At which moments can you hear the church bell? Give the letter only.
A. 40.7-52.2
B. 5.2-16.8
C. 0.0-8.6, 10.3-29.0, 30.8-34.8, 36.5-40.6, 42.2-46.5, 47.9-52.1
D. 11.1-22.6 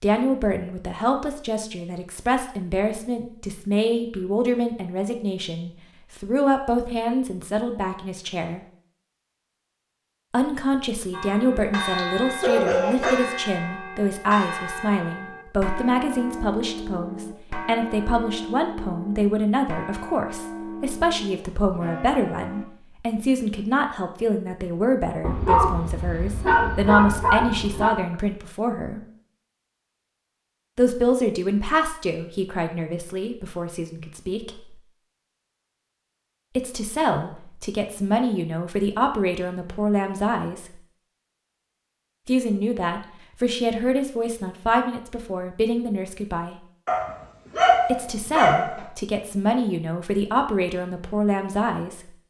D.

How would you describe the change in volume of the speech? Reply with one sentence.
The loudness of the speech stays about the same.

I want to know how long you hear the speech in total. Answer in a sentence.
You can hear the speech for 44 seconds altogether.